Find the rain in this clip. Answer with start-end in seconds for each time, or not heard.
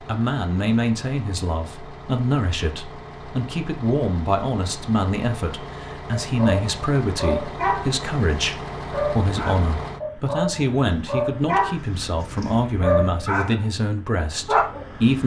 not heard.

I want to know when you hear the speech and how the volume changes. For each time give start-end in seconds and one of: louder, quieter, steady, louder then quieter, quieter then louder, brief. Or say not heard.
0.0-15.2 steady.